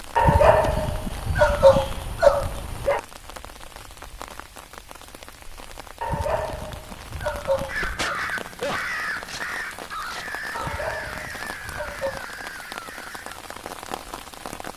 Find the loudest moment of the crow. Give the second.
8 s.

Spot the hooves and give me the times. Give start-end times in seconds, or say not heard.
not heard.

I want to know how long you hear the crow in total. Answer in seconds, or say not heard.
6 s.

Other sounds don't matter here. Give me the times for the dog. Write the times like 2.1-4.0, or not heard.
0.1-3.0, 6.0-8.0, 10.5-12.2.